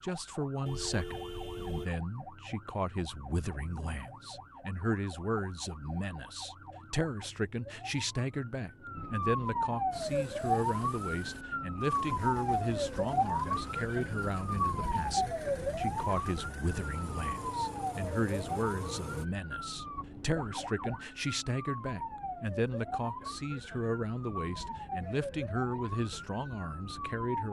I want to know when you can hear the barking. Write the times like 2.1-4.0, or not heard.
not heard.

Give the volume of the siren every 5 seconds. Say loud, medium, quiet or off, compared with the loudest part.
quiet, medium, loud, loud, medium, medium.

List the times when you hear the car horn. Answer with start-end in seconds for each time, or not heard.
0.7-1.9.